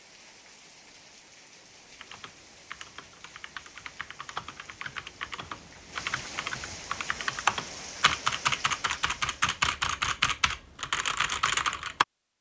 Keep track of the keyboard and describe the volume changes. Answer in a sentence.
The loudness of the keyboard goes up.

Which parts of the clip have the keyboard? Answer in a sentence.
The keyboard can be heard from 1.9 to 12.1 s.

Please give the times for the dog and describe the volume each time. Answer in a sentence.
The dog can't be heard in this clip.